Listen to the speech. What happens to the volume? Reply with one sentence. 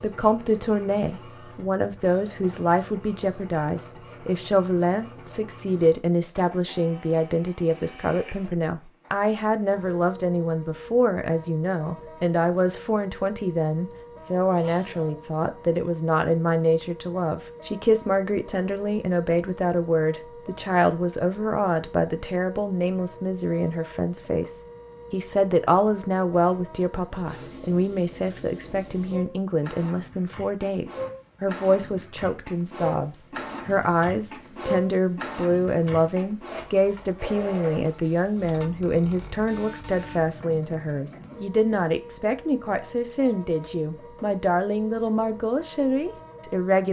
The loudness of the speech stays about the same.